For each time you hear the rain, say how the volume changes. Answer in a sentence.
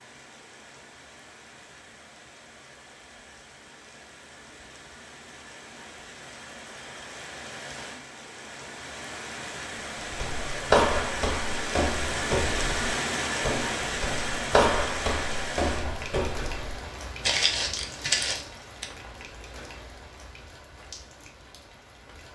The rain can be heard from 0.0 to 22.3 s, getting louder then quieter.